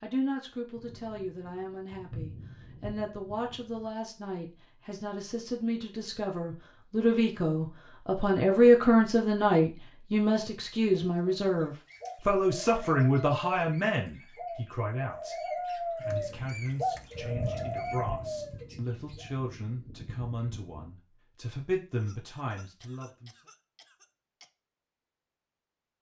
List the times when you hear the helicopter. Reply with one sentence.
You can't hear the helicopter here.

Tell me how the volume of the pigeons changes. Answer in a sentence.
The loudness of the pigeons goes up.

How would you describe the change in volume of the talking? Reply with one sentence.
The volume of the talking goes up, then down.